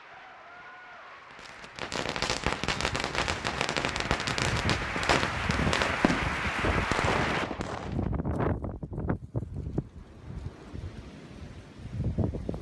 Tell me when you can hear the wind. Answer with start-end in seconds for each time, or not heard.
2.8-12.5.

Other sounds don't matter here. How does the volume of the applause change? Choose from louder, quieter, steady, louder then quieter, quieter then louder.
louder.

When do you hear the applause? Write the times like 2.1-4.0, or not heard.
0.0-7.5.